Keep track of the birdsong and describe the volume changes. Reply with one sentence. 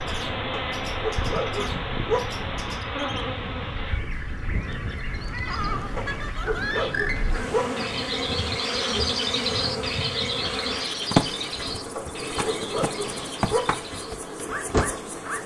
The loudness of the birdsong goes up, then down.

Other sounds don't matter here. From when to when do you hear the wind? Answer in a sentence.
You can hear the wind from 0.0 to 8.5 s.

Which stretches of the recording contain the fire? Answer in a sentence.
You can't hear the fire here.